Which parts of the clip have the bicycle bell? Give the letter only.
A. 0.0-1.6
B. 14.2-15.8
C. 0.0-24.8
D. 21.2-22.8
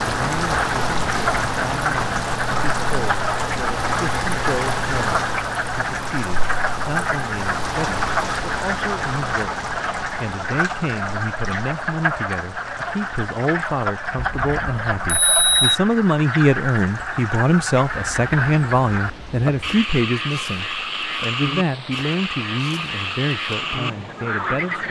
B.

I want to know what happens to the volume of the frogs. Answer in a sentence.
The loudness of the frogs stays about the same.